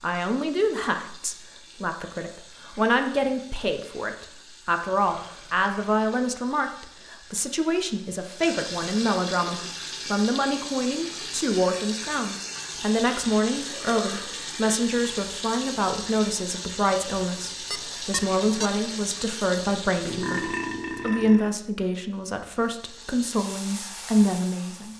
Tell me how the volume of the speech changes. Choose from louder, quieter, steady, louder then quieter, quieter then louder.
steady.